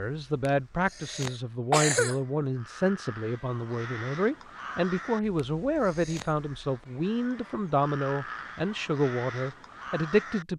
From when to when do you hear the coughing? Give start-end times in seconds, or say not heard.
0.5-2.1, 5.3-6.3.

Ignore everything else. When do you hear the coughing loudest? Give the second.
2 s.